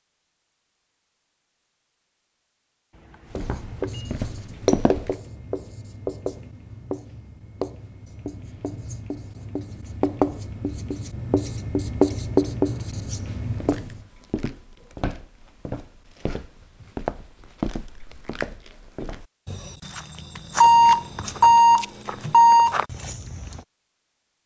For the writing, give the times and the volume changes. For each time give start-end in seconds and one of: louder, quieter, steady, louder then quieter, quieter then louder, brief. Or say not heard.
3.4-14.0 quieter then louder.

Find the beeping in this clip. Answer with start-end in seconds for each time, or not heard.
2.9-4.0, 20.6-22.8.